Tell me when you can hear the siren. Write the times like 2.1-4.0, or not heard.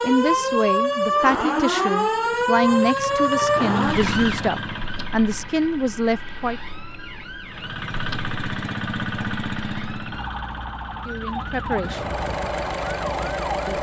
0.0-13.7.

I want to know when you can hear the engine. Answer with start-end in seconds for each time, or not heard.
0.0-5.8, 7.5-13.7.